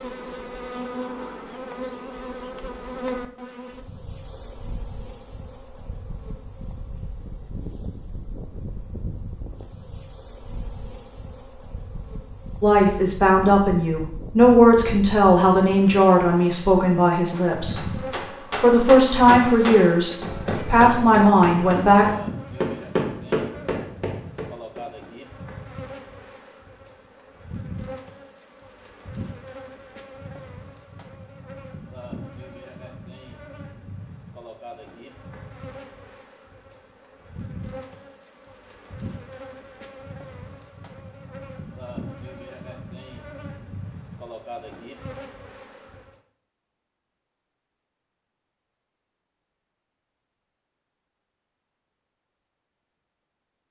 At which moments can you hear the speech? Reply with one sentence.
The speech can be heard from 12.6 to 18.0 s and from 18.6 to 22.1 s.